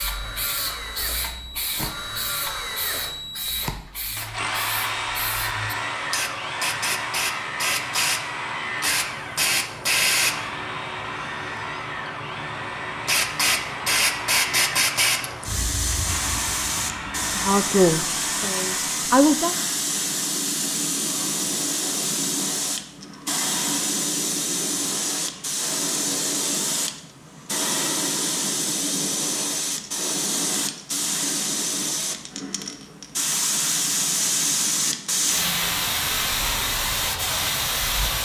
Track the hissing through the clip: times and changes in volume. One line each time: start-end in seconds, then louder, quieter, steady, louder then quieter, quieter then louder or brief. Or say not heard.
0.0-38.2 louder.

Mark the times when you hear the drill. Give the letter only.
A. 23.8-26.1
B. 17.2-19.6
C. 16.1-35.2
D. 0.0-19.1
D.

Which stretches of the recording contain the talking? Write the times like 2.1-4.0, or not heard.
17.2-19.6.